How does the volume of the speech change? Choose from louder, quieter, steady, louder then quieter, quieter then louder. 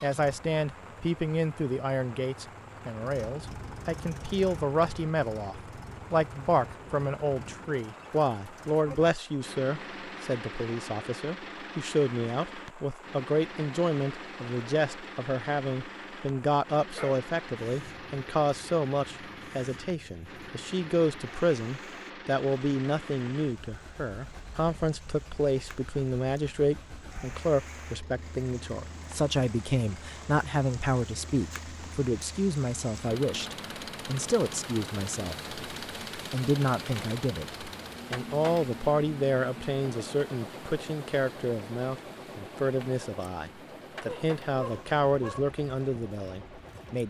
steady.